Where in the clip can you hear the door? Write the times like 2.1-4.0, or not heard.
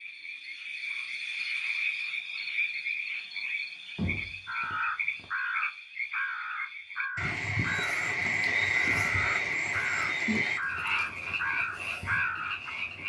4.0-5.2.